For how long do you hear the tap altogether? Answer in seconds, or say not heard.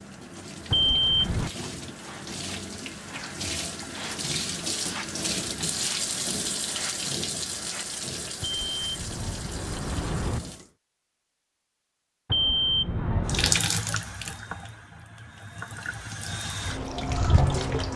15 s.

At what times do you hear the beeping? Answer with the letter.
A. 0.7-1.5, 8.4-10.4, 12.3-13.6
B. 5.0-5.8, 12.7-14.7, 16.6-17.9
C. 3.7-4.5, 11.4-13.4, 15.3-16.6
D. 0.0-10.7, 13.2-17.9
A.